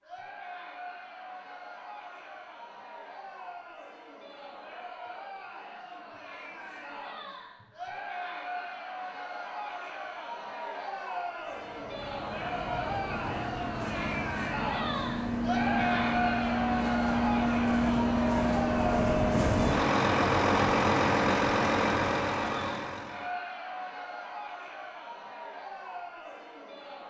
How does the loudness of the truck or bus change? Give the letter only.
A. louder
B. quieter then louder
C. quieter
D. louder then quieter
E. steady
A.